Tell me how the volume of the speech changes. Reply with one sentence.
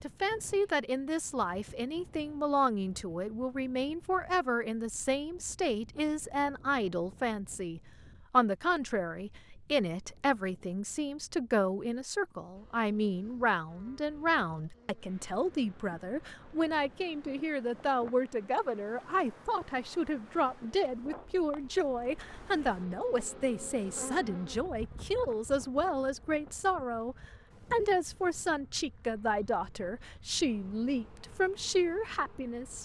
The loudness of the speech stays about the same.